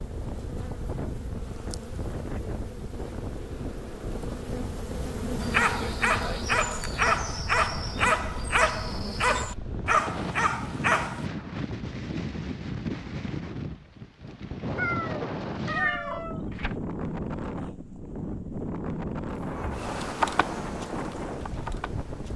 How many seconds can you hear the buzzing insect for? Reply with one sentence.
The buzzing insect can be heard for 12 seconds in total.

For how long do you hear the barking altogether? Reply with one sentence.
You can hear the barking for 6 seconds altogether.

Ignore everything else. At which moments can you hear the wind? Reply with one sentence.
The wind can be heard from 0.0 to 22.3 s.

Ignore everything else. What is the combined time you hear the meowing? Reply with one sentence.
The meowing can be heard for 2 seconds in total.